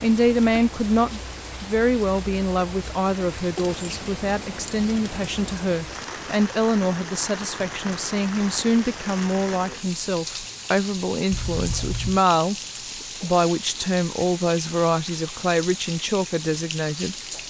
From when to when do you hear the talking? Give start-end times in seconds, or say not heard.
0.0-12.6, 13.2-17.1.